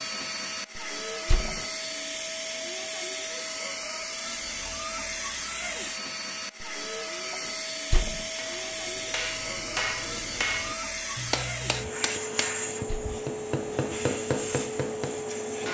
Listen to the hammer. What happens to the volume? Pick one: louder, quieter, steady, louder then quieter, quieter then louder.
steady.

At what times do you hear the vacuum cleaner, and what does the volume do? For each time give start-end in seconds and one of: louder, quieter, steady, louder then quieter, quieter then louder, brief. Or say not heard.
0.0-15.6 steady.